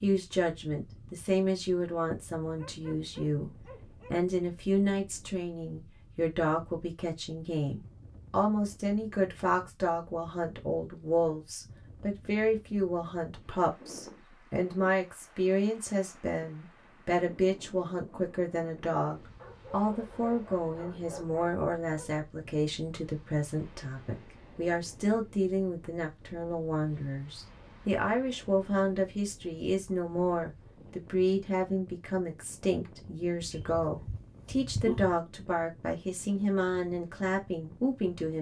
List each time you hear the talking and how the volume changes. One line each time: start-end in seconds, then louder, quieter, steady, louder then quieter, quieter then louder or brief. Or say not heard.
0.0-38.3 steady.